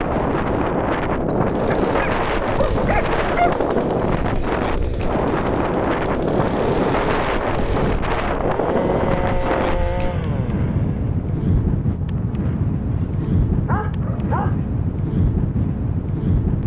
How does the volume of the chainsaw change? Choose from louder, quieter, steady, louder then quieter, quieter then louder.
steady.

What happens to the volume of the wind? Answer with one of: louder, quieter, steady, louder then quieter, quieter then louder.
steady.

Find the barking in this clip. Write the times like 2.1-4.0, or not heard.
1.7-3.6, 12.9-14.6.